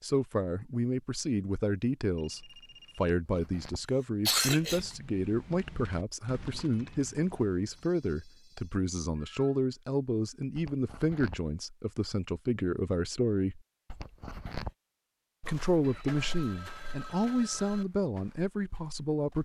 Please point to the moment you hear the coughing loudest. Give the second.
4 s.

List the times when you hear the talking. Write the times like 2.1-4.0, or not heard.
0.0-13.6, 15.4-19.4.